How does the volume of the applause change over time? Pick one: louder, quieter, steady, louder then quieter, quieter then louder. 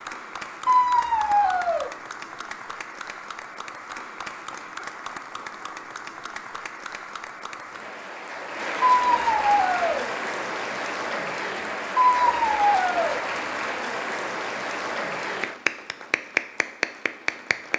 louder.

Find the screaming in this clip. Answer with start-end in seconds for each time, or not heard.
0.7-1.9, 8.9-10.1, 12.0-13.2.